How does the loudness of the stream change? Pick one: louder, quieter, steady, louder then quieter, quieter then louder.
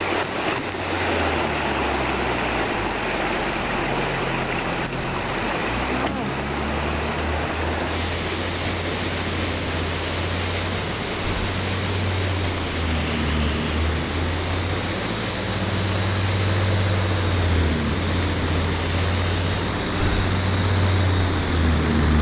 quieter.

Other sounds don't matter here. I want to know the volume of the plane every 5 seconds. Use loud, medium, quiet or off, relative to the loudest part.
medium, medium, medium, loud, loud.